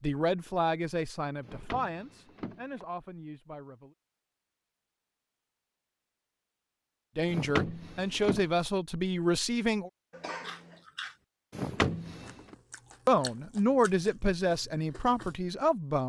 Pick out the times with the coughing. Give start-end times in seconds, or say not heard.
10.1-10.8.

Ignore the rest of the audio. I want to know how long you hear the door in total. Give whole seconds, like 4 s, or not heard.
4 s.